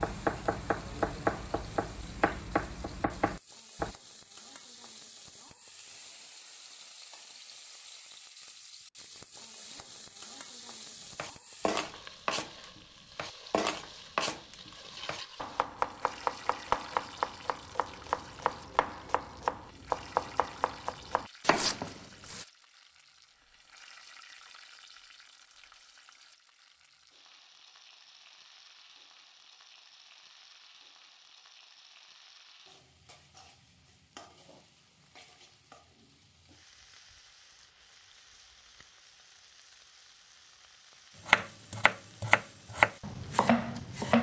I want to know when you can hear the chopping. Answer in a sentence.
The chopping can be heard from 0.0 to 4.0 s, from 11.2 to 22.4 s and from 41.2 to 44.1 s.